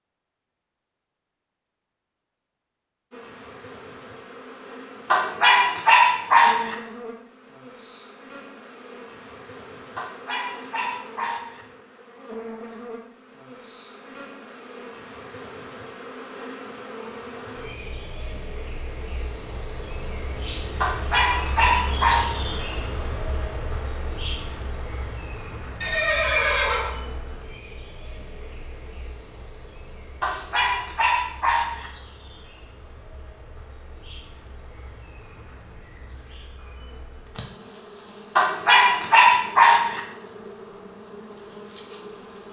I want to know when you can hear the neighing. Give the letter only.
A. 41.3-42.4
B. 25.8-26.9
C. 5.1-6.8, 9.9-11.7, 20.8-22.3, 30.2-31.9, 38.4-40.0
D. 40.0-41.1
B.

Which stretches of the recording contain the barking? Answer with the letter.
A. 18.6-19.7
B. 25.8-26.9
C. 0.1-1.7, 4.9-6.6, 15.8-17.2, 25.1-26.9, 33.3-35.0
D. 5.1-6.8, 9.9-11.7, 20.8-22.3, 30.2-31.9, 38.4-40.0
D.